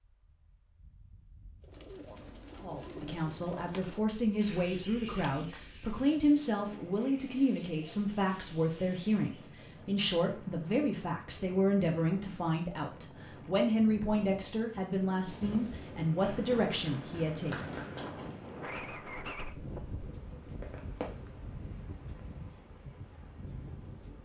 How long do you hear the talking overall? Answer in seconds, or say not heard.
15 s.